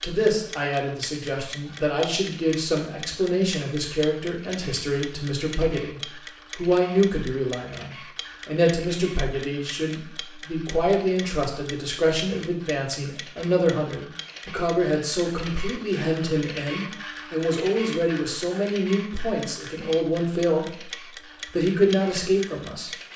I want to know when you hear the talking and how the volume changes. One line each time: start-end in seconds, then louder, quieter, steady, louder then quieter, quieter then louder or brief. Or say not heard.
0.0-20.9 steady
21.5-22.9 brief.